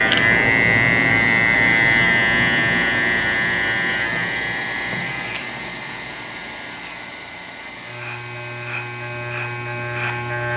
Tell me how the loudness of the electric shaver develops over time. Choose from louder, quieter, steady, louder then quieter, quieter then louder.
quieter then louder.